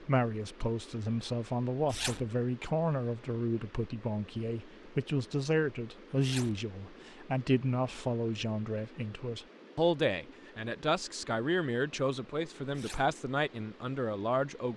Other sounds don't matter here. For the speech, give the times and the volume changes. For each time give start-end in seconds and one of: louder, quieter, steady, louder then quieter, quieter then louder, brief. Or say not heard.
0.0-14.7 steady.